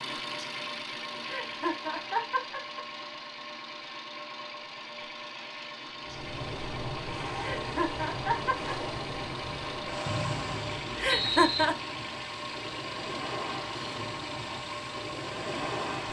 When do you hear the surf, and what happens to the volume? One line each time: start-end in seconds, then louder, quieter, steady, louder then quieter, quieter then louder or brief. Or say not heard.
6.0-16.0 steady.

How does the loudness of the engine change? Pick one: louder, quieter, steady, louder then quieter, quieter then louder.
steady.